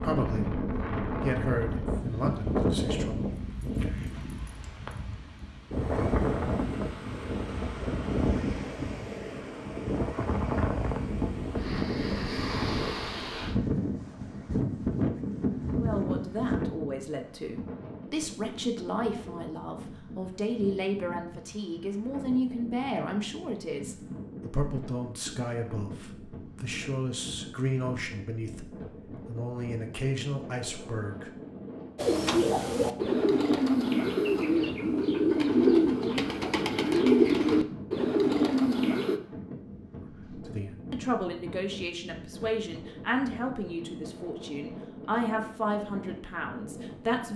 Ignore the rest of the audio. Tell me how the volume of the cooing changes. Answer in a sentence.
The volume of the cooing stays about the same.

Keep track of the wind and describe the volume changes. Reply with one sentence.
The loudness of the wind goes down.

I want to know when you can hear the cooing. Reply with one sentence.
You can hear the cooing from 31.9 to 39.2 s.